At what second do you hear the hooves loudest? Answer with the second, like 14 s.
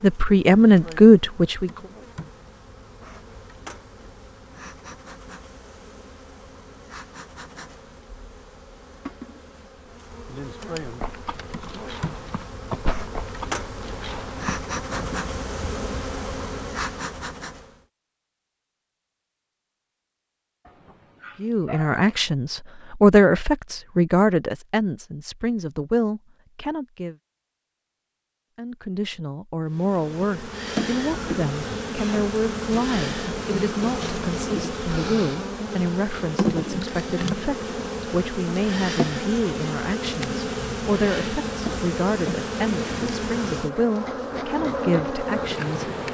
13 s.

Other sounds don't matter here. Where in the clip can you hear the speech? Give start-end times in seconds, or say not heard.
0.0-1.7, 21.4-27.1, 28.6-46.1.